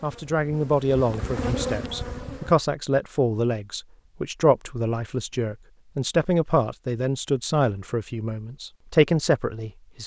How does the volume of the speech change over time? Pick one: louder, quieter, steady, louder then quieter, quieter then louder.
steady.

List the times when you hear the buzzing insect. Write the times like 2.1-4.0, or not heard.
0.0-2.5.